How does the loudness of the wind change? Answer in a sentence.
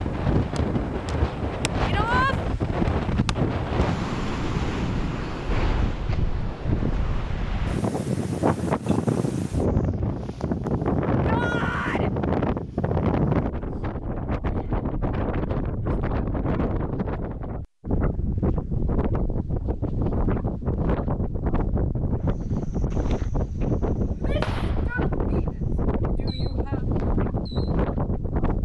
The volume of the wind stays about the same.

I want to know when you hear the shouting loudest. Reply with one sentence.
The loudest moment of the shouting is at 2 seconds.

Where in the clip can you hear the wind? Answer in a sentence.
You can hear the wind from 0.0 to 28.6 s.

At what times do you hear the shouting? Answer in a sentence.
The shouting can be heard from 1.9 to 2.4 s, from 11.2 to 12.1 s and from 24.1 to 26.8 s.